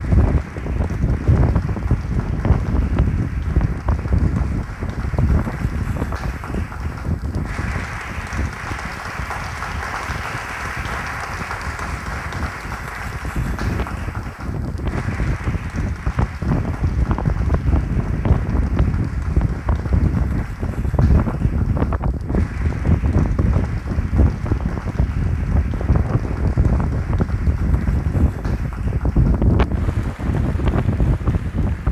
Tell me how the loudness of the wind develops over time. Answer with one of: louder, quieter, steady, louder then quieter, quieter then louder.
quieter then louder.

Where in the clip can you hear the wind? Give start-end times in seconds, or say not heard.
0.0-31.8.